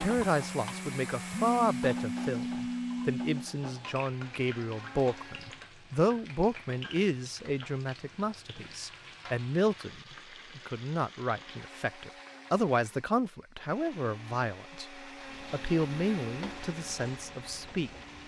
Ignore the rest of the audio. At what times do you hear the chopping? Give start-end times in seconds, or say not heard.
not heard.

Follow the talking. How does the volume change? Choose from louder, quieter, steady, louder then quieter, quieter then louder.
steady.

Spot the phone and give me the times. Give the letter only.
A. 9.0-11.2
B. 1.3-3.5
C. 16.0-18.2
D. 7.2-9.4
B.